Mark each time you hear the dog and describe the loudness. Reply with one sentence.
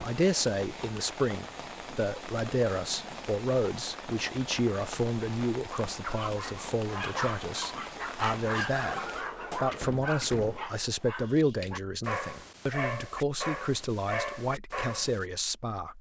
You can hear the dog from 6.0 to 15.2 s, at a steady volume.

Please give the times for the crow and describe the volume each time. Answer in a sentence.
You can't hear the crow here.